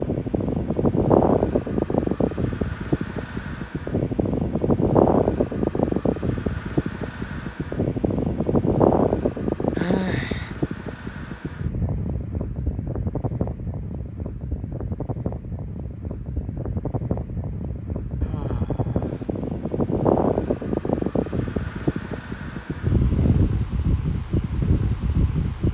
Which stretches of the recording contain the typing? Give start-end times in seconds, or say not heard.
not heard.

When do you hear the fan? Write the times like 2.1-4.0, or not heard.
0.0-25.6.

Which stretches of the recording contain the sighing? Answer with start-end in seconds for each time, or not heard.
9.8-10.6, 18.2-19.2.